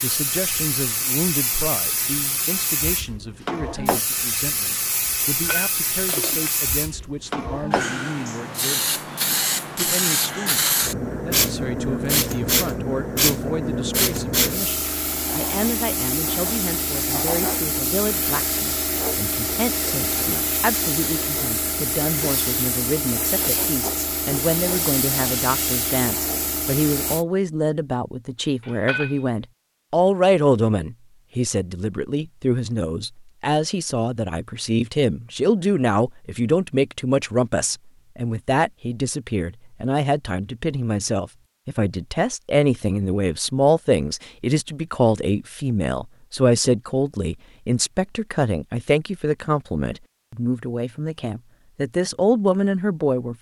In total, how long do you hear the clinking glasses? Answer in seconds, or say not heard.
2 s.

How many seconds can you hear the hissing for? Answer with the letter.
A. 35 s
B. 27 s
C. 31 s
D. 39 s
B.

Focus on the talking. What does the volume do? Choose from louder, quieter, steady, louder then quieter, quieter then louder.
louder.